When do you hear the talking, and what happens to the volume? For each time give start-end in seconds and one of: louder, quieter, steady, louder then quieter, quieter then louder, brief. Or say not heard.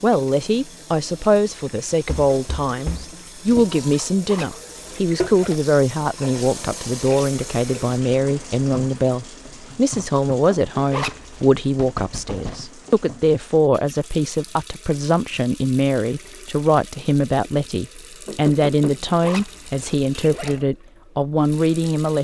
0.0-22.2 steady.